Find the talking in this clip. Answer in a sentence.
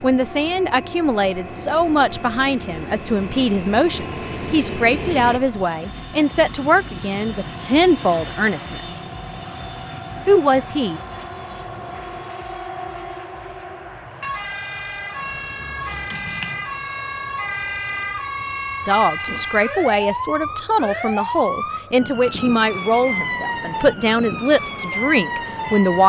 The talking can be heard from 0.0 to 9.0 s, from 10.2 to 11.0 s and from 18.9 to 26.0 s.